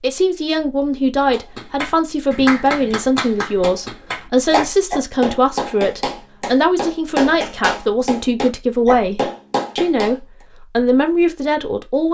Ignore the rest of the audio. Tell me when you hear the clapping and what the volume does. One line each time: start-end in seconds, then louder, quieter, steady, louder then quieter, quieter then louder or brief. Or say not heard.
1.3-10.2 steady.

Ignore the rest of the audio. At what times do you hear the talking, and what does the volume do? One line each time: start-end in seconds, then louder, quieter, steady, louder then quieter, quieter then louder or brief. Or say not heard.
0.0-12.0 steady.